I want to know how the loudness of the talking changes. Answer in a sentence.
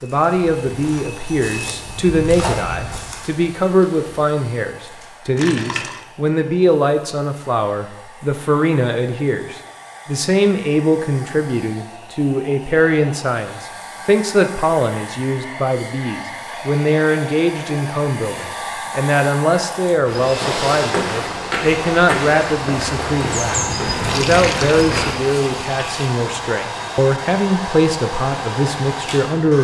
The loudness of the talking stays about the same.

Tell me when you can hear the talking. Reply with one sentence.
The talking can be heard from 0.0 to 29.5 s.